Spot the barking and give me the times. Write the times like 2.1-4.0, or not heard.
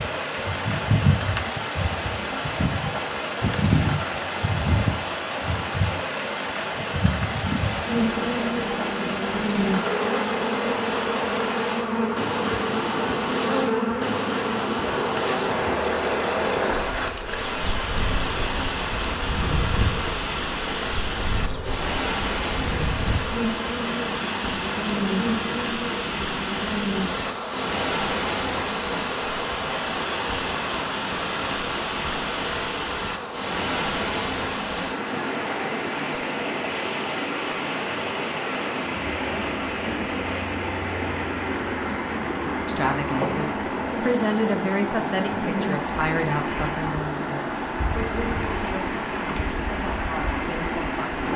not heard.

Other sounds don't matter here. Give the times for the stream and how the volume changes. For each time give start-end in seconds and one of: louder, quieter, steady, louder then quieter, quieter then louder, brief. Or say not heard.
0.0-51.3 steady.